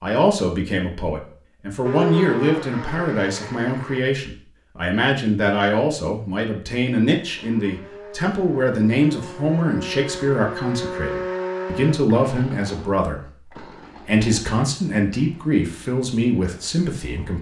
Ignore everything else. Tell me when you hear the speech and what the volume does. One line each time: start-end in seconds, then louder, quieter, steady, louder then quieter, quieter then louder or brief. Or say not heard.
0.0-17.3 steady.